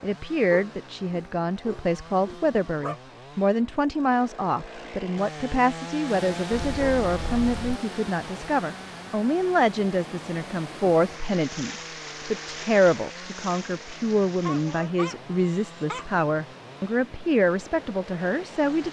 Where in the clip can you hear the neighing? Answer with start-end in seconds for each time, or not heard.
not heard.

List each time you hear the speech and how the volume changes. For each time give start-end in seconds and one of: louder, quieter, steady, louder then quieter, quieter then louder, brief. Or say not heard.
0.0-18.8 steady.